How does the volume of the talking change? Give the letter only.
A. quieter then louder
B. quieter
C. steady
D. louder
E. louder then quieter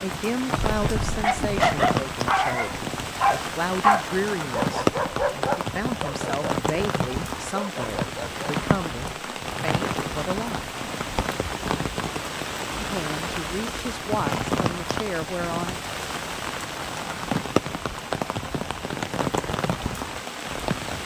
C.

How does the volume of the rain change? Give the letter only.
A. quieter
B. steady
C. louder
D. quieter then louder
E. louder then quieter
B.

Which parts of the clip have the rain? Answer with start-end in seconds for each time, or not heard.
0.0-21.0.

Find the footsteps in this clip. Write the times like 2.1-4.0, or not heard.
not heard.